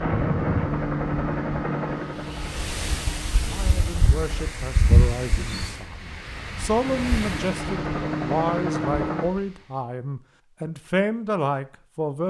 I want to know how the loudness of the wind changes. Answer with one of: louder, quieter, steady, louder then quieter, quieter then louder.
louder then quieter.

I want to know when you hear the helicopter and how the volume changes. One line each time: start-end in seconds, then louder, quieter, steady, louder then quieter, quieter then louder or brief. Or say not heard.
0.0-4.5 quieter
6.8-9.2 brief.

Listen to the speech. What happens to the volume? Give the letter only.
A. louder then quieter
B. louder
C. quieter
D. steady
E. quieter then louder
B.